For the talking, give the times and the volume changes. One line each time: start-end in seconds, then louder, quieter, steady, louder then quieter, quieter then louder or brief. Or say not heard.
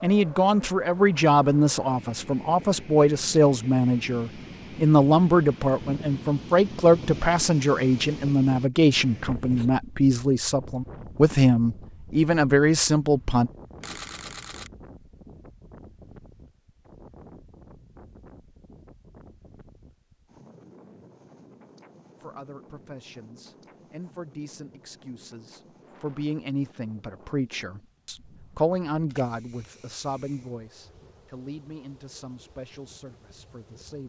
0.0-13.5 steady
22.2-34.0 louder then quieter.